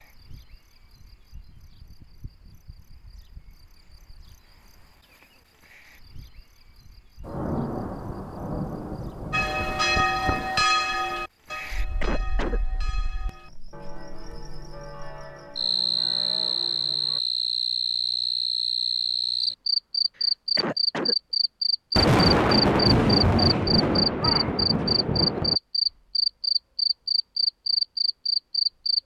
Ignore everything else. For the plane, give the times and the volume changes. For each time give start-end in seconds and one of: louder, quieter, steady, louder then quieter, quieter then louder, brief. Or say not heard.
not heard.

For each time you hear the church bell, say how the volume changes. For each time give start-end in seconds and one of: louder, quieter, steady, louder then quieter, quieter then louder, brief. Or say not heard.
9.3-17.2 quieter.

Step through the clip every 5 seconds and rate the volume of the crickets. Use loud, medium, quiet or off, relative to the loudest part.
quiet, quiet, quiet, loud, loud, loud.